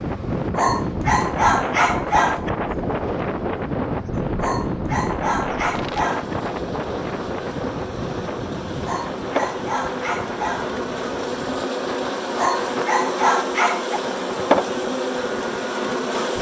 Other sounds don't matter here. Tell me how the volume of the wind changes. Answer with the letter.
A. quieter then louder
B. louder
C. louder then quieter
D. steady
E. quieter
E.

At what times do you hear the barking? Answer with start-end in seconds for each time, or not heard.
0.6-2.5, 4.3-6.3, 8.8-10.8, 12.3-14.0.